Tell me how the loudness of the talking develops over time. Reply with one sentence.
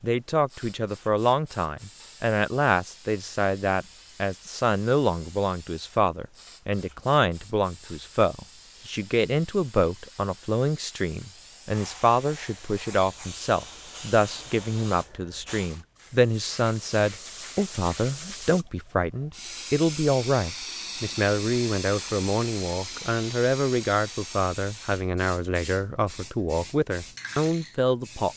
The volume of the talking stays about the same.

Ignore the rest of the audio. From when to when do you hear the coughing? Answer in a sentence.
You can't hear the coughing here.